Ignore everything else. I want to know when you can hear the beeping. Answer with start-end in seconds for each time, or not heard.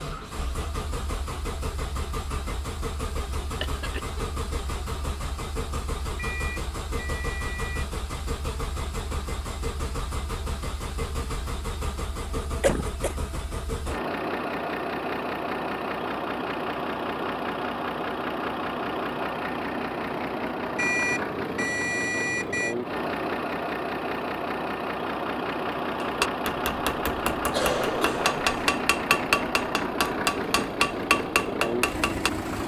6.2-7.9, 20.8-22.8.